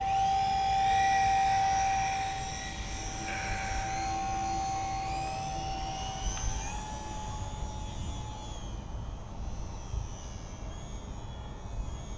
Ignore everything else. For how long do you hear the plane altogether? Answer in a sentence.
You can hear the plane for 12 seconds altogether.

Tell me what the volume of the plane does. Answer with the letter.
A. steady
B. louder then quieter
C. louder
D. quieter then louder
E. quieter
E.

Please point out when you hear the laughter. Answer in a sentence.
The laughter can be heard from 3.2 to 4.1 s.